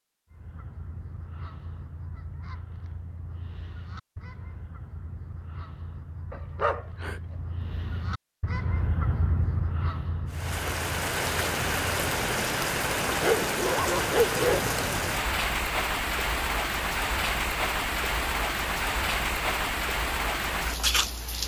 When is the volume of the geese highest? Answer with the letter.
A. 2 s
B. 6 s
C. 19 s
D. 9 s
D.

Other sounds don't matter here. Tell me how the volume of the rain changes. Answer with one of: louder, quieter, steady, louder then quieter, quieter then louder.
steady.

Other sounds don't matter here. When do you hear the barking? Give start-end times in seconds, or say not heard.
6.3-8.1, 13.1-14.7.